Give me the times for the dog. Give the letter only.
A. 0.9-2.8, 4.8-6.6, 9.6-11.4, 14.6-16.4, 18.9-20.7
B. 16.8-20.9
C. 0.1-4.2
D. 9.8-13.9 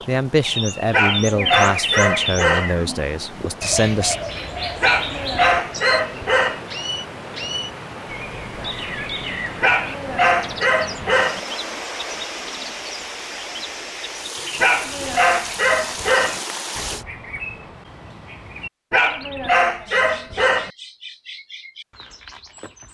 A.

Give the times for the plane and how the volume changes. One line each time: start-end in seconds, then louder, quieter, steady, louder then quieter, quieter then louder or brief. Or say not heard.
not heard.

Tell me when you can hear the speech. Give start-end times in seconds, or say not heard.
0.1-4.2.